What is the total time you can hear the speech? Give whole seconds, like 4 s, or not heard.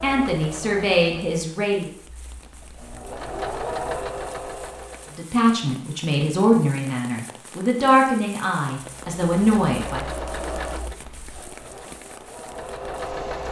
7 s.